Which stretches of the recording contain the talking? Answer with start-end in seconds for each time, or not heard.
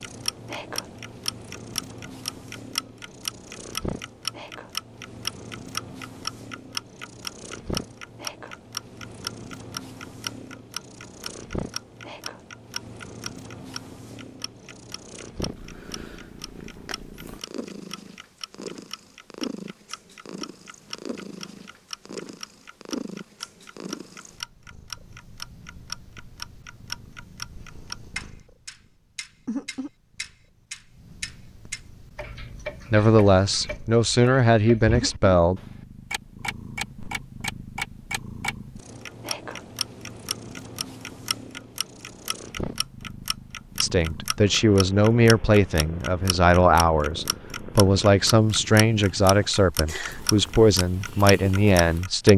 32.9-35.6, 43.8-52.3.